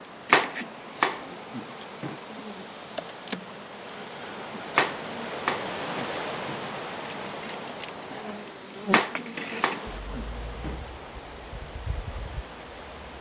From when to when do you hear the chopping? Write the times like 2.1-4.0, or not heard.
0.2-2.1, 4.7-6.6, 8.8-10.8.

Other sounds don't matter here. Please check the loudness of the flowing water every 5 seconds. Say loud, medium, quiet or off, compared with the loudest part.
medium, loud, medium.